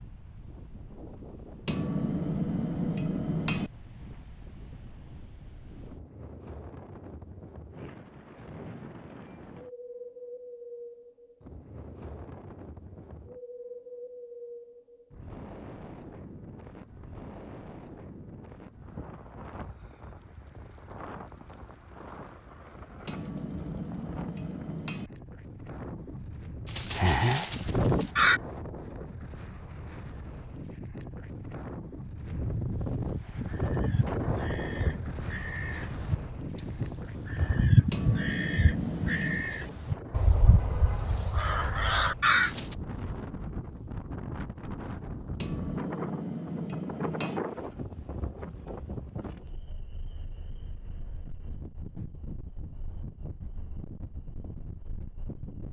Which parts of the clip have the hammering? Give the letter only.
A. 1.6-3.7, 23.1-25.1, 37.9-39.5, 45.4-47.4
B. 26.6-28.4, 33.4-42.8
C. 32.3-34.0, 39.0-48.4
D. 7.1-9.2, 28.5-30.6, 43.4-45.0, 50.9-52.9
A.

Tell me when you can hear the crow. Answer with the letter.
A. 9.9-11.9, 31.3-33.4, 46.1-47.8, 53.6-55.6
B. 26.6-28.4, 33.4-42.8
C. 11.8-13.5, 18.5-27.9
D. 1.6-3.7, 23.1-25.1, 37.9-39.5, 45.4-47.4
B.